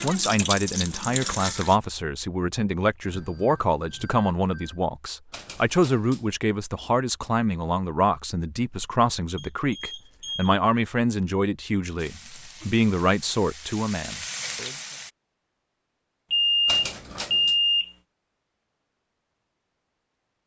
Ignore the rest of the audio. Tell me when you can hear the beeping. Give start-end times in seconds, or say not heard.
3.0-4.8, 9.3-10.6, 16.3-17.9.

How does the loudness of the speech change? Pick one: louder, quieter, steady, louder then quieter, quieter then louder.
steady.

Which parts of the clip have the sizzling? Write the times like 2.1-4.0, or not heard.
0.0-1.8, 11.9-15.1.